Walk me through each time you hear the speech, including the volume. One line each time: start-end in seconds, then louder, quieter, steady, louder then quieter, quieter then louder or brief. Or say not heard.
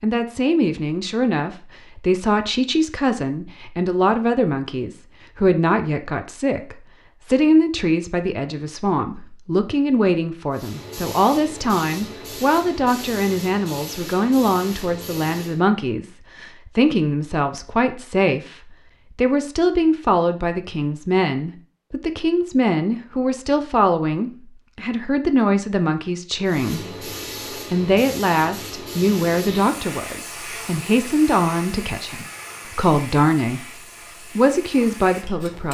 0.0-33.6 steady
34.4-35.7 brief.